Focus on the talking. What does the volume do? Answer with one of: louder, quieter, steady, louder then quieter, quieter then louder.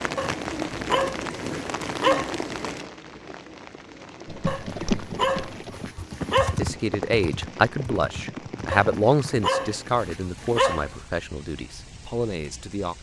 quieter.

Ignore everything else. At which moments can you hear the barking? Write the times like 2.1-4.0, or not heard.
0.1-2.4, 4.5-6.5, 8.7-11.0.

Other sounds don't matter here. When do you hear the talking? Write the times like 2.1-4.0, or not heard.
6.4-12.9.